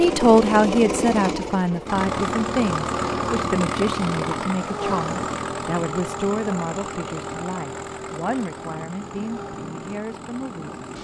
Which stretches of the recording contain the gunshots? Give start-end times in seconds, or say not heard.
not heard.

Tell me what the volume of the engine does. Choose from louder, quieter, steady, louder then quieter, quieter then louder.
quieter.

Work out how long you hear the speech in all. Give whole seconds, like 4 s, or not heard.
11 s.